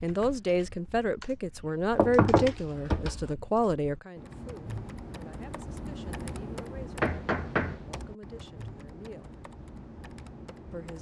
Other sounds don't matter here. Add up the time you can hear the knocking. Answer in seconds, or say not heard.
2 s.